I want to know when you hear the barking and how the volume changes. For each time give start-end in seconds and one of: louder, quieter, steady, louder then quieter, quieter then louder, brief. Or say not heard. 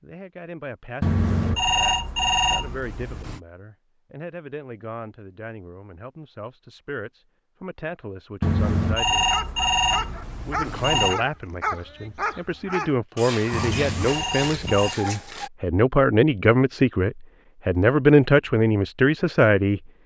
9.2-15.5 steady.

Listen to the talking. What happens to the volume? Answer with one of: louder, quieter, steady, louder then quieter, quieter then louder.
louder.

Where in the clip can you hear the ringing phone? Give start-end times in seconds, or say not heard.
1.0-3.4, 8.4-11.2, 13.5-14.9.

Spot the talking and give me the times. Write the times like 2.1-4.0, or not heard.
0.0-9.3, 10.4-19.8.